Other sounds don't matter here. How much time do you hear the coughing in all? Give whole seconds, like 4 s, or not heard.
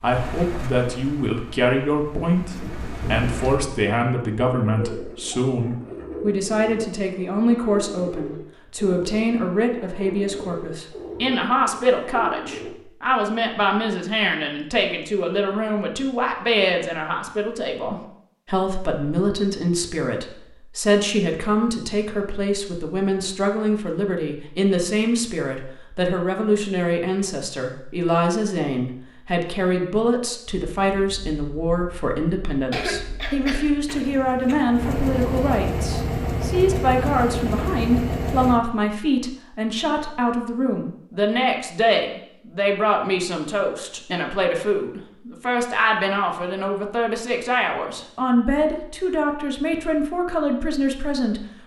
2 s.